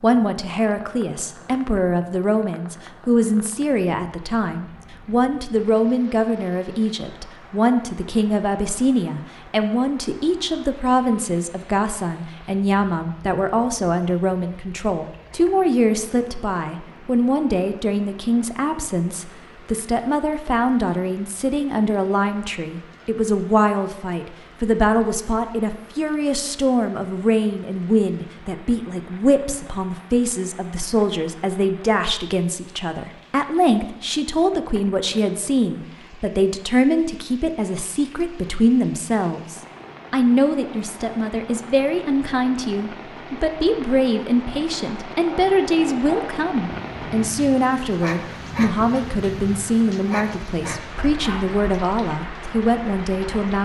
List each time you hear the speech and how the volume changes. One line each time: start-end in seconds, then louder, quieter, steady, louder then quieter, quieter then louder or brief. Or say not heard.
0.0-53.6 steady.